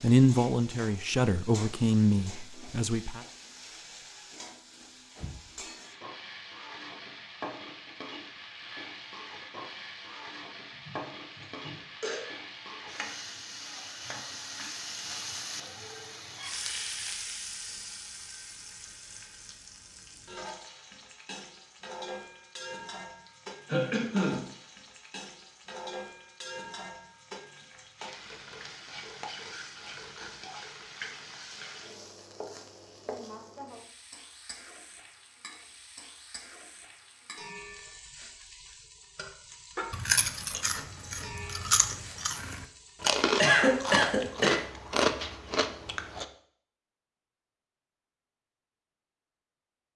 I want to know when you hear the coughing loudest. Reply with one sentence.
The volume of the coughing peaks at 44 seconds.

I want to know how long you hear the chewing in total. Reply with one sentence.
You can hear the chewing for 6 seconds altogether.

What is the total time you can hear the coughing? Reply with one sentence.
The coughing can be heard for 4 seconds in total.